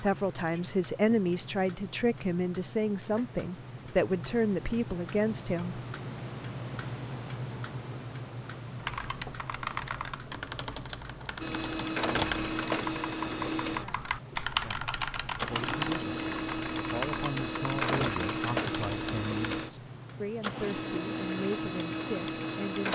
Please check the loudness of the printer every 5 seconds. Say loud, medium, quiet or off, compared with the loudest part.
off, off, loud, loud, loud.